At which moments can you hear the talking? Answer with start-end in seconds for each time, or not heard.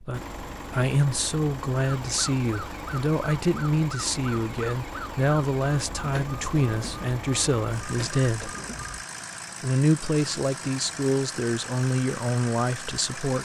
0.0-8.5, 9.6-13.4.